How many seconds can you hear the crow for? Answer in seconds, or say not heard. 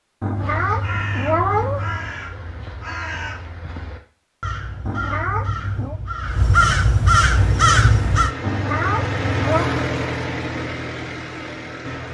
8 s.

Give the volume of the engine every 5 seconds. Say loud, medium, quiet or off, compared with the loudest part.
off, loud, loud.